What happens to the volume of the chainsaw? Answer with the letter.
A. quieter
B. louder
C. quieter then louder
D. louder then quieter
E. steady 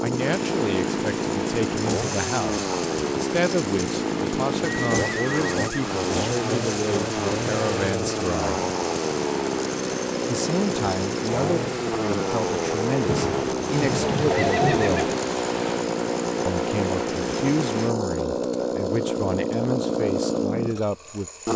E.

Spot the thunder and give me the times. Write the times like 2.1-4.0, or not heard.
13.1-14.9.